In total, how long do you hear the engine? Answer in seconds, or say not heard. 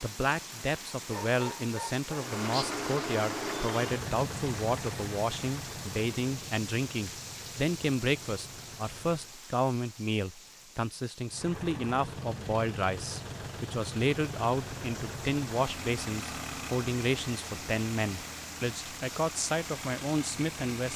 17 s.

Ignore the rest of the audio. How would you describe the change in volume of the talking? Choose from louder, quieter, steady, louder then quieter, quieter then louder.
steady.